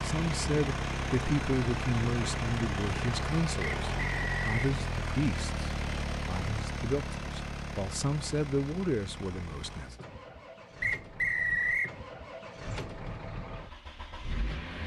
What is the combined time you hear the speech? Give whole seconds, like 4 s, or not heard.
10 s.